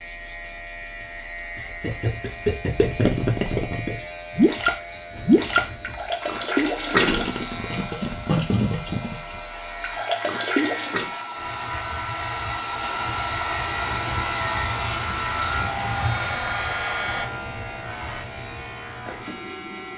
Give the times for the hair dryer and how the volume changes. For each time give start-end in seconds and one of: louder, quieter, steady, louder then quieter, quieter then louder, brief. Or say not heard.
6.2-17.3 louder.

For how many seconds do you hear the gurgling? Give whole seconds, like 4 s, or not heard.
9 s.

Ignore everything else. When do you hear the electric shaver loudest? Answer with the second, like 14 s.
16 s.